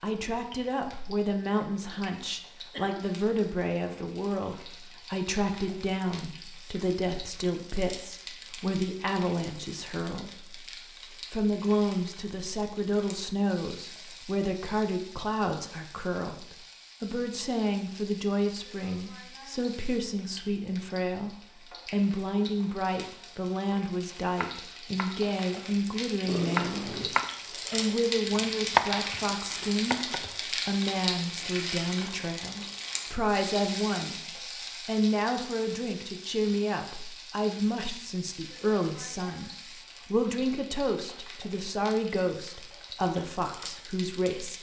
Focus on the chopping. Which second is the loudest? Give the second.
29 s.